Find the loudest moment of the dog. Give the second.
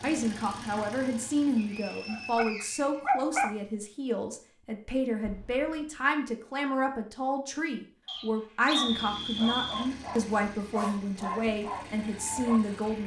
3 s.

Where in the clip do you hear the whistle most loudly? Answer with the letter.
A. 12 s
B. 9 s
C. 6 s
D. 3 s
B.